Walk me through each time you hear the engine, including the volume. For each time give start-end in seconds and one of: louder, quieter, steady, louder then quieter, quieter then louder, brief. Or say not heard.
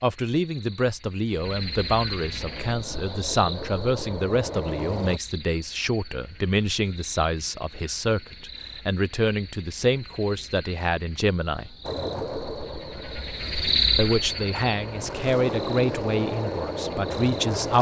2.4-5.2 brief
11.8-17.7 quieter then louder.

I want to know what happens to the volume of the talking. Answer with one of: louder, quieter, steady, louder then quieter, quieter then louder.
steady.